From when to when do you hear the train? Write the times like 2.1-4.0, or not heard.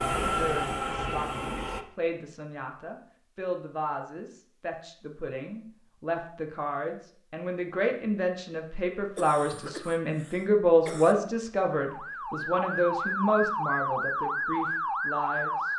0.0-1.9.